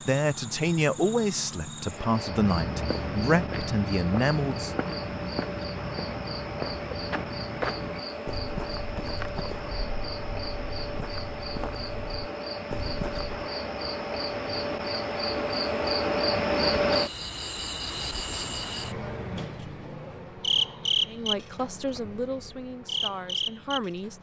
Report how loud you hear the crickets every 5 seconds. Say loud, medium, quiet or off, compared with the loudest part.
medium, medium, medium, loud, loud.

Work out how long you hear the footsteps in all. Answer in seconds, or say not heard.
11 s.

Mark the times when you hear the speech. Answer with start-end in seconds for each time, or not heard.
0.0-4.7, 21.1-24.1.